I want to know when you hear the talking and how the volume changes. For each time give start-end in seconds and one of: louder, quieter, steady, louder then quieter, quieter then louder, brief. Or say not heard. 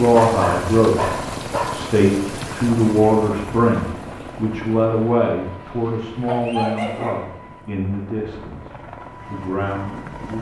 0.0-10.3 quieter.